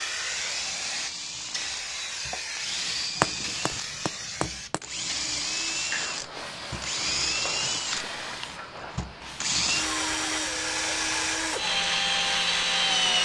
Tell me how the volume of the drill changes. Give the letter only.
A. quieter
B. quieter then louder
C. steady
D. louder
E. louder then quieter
D.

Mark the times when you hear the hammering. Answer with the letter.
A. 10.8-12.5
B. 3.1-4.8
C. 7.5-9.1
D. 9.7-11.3
B.